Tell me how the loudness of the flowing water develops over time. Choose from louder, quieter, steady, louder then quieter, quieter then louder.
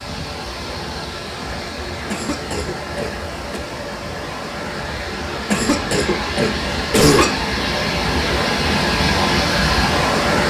louder.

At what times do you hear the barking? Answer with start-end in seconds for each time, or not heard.
not heard.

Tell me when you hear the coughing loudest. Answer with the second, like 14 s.
7 s.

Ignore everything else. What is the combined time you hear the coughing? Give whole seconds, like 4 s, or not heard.
3 s.